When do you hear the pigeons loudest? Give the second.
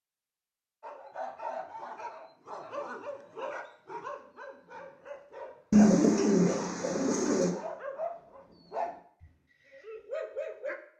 6 s.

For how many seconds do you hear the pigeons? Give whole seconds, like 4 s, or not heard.
2 s.